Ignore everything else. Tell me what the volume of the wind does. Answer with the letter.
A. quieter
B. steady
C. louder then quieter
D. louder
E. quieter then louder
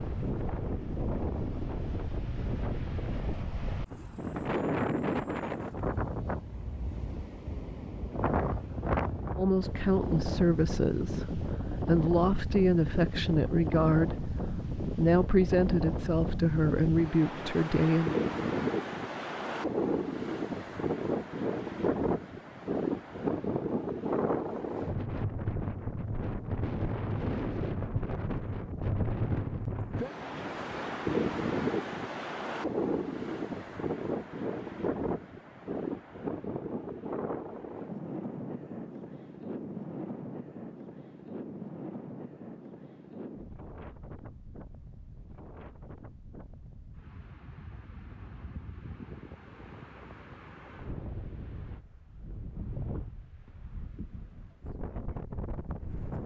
A.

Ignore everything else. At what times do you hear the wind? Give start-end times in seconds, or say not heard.
0.0-56.2.